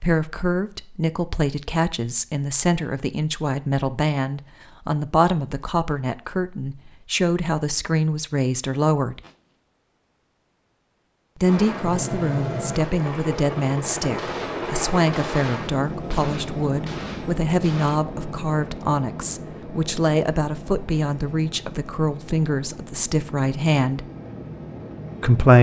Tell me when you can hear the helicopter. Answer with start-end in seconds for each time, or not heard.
11.4-25.5.